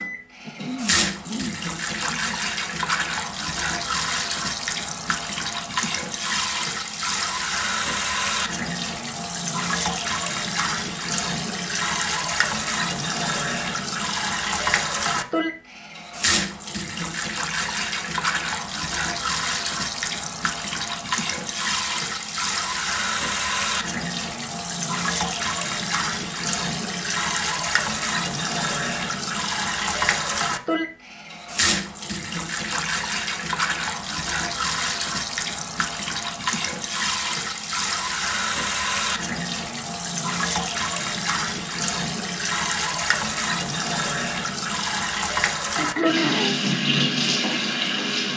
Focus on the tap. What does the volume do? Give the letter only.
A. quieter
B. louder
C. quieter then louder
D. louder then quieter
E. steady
E.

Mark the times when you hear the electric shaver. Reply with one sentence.
The electric shaver can't be heard in this clip.